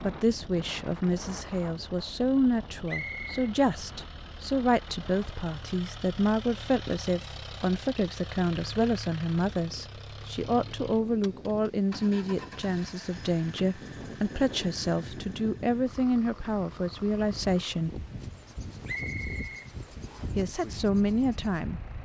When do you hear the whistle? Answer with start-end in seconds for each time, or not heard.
2.9-3.4, 18.9-20.4.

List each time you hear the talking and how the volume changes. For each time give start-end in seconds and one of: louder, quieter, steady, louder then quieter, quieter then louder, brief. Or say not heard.
0.0-18.1 steady
20.4-21.8 brief.